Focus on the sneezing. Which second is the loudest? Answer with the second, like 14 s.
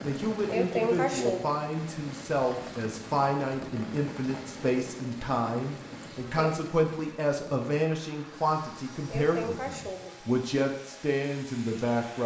1 s.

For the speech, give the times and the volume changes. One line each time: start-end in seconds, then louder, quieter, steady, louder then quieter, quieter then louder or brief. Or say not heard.
0.0-12.2 steady.